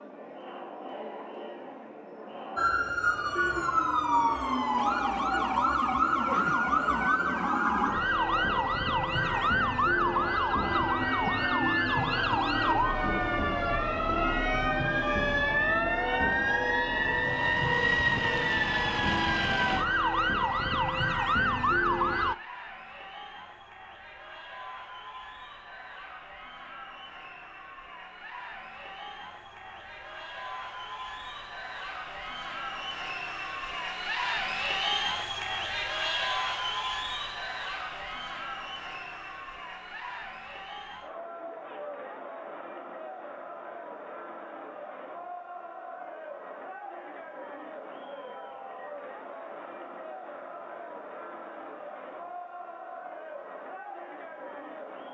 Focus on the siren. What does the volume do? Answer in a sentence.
The volume of the siren stays about the same.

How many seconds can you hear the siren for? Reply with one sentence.
You can hear the siren for 20 seconds altogether.